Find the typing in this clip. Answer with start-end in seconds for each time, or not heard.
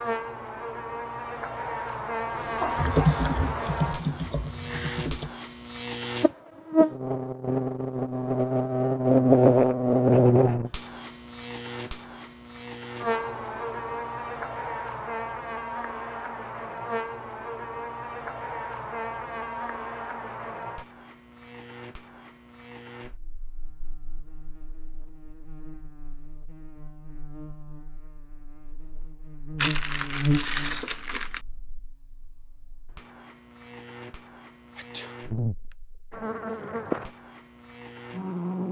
2.4-5.3.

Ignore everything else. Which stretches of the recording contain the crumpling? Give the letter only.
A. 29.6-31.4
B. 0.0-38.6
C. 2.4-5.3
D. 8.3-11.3
A.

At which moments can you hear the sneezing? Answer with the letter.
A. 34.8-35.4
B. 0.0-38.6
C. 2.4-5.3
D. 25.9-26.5
A.